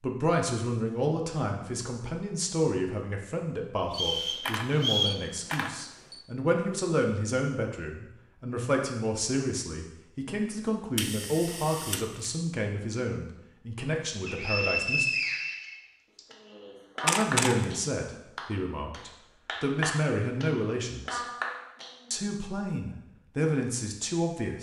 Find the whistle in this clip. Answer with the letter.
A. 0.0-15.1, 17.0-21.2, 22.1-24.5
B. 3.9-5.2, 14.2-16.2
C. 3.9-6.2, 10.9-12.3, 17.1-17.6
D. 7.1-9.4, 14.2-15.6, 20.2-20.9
B.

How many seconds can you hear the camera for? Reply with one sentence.
You can hear the camera for 4 seconds altogether.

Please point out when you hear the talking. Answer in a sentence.
The talking can be heard from 0.0 to 15.1 s, from 17.0 to 21.2 s and from 22.1 to 24.5 s.